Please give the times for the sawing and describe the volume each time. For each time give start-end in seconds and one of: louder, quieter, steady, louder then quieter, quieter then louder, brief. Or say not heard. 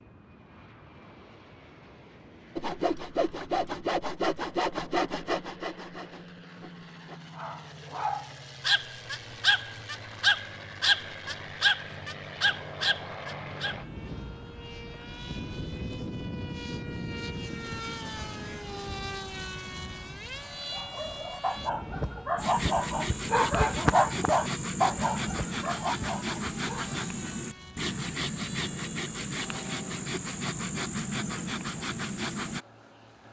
2.5-7.2 quieter
22.4-32.6 steady.